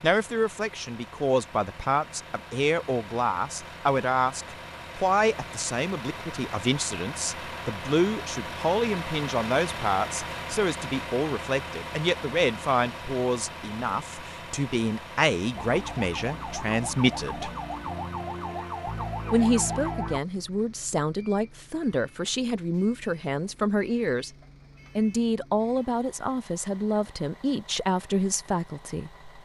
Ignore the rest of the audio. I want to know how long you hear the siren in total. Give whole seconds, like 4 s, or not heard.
5 s.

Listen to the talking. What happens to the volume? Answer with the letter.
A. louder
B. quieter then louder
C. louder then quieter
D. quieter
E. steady
E.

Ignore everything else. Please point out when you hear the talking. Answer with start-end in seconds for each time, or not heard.
0.0-17.5, 19.3-24.3, 24.9-29.4.